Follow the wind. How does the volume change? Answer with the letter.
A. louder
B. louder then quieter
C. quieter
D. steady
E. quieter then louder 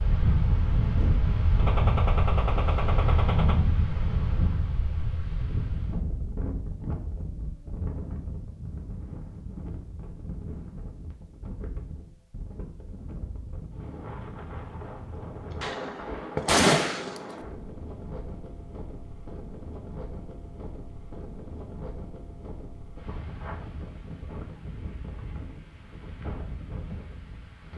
C.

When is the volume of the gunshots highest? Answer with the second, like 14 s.
17 s.